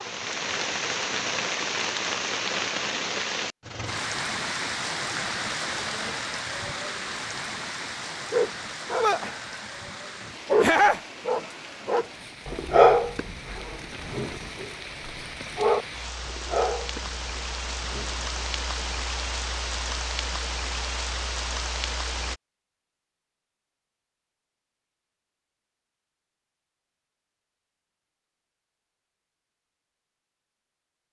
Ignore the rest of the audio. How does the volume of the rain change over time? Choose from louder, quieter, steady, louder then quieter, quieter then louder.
quieter then louder.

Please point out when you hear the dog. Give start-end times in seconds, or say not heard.
8.3-9.7, 10.4-18.9.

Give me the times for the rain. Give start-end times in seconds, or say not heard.
0.0-22.4.